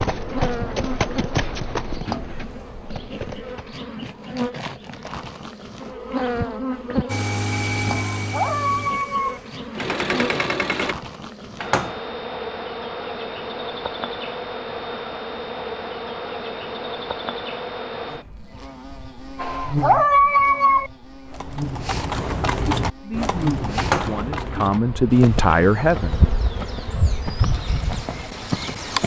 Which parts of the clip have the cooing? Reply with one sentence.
You can't hear the cooing here.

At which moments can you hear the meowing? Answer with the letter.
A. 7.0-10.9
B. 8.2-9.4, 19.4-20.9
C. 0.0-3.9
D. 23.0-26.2
B.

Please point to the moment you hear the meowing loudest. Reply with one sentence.
The volume of the meowing peaks at 20 seconds.